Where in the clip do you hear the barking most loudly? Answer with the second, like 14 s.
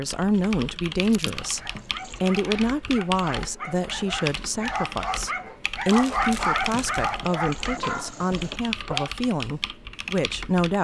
6 s.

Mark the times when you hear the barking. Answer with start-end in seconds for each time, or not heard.
1.4-9.2.